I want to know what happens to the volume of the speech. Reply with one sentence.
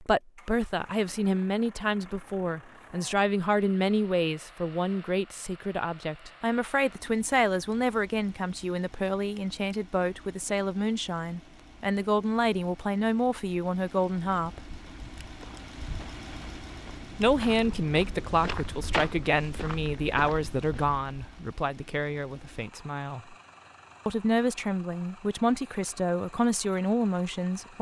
The volume of the speech stays about the same.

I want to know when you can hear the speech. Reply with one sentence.
You can hear the speech from 0.0 to 14.8 s, from 17.1 to 23.4 s and from 24.1 to 27.7 s.